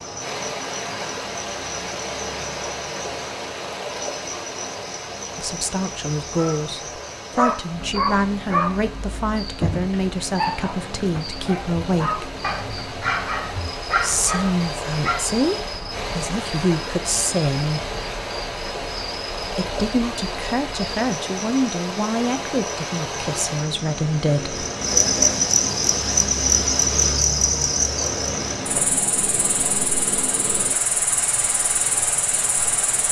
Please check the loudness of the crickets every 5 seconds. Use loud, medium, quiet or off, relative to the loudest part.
quiet, quiet, quiet, quiet, medium, loud, medium.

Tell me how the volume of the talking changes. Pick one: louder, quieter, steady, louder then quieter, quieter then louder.
steady.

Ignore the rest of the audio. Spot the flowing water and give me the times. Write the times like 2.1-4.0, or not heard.
0.0-33.0.